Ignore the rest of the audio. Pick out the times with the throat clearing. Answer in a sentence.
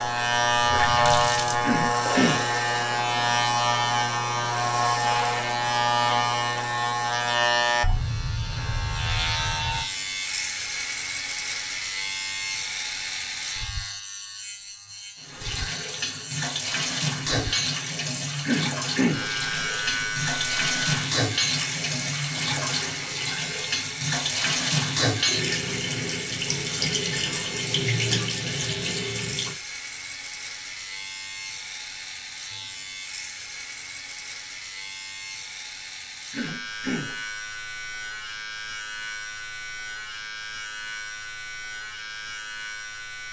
The throat clearing can be heard from 1.6 to 2.5 s, from 18.4 to 19.3 s and from 36.3 to 37.2 s.